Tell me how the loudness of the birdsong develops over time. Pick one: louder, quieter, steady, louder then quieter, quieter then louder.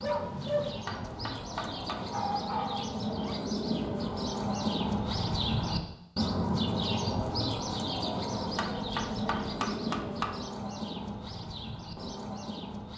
louder then quieter.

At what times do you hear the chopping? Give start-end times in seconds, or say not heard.
0.7-2.0, 8.3-10.3.